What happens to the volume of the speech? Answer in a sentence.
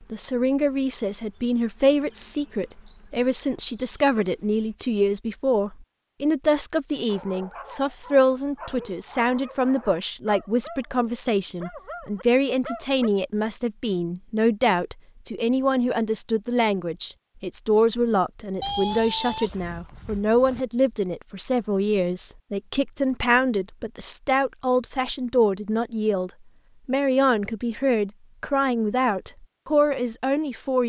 The loudness of the speech stays about the same.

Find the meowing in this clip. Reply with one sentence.
You can hear the meowing from 18.6 to 20.6 s.